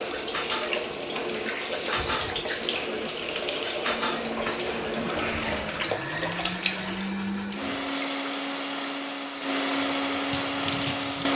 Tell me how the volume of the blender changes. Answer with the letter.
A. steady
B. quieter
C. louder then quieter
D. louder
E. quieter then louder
D.